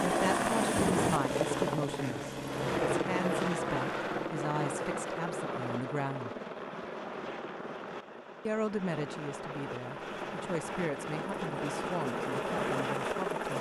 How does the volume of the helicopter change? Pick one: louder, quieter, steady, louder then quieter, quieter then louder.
quieter then louder.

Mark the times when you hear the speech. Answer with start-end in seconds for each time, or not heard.
0.0-6.3, 8.4-13.5.